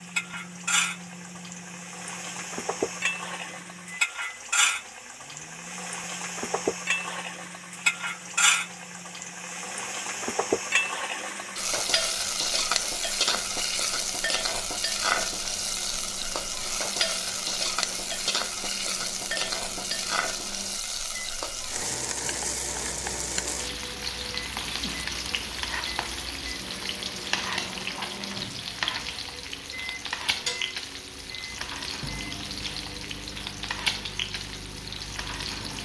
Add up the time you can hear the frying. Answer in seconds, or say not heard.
36 s.